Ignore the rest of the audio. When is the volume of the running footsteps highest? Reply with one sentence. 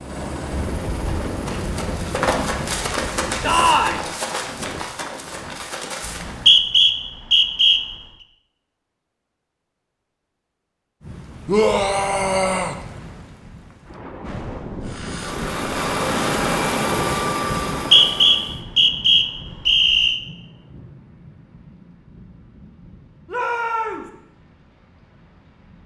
The loudest moment of the running footsteps is at 2 seconds.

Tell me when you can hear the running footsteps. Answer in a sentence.
The running footsteps can be heard from 0.9 to 6.6 s.